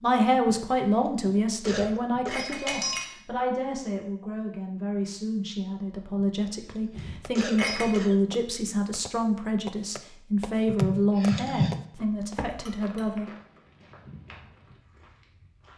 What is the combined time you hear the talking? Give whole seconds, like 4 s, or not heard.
13 s.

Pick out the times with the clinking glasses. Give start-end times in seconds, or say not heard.
1.6-3.1, 6.9-8.0, 12.5-13.1.